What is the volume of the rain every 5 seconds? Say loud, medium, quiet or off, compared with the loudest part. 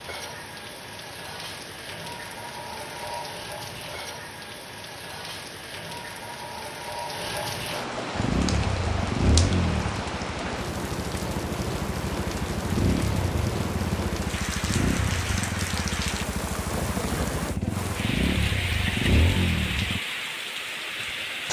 medium, loud, loud, loud, loud.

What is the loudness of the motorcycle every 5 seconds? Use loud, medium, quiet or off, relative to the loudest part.
off, loud, loud, loud, off.